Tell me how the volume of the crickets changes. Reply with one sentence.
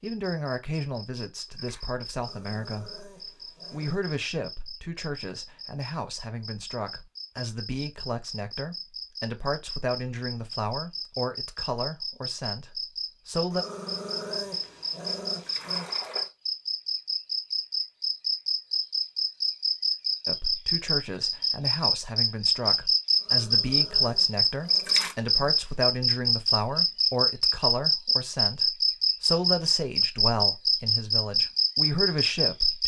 The loudness of the crickets goes up.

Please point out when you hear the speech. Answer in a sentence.
You can hear the speech from 0.0 to 3.0 s, from 3.7 to 13.7 s and from 20.2 to 32.8 s.